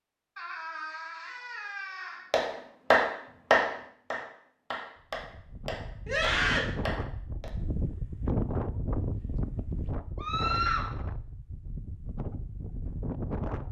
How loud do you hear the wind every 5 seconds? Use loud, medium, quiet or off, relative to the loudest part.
off, loud, loud.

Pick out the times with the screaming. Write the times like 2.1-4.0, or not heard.
0.3-2.3, 6.0-6.7, 10.2-10.8.